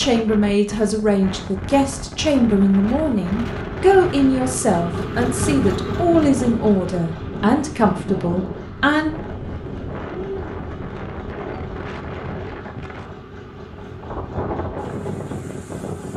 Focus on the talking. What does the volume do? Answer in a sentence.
The volume of the talking stays about the same.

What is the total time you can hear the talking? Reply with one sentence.
The talking can be heard for 9 seconds in total.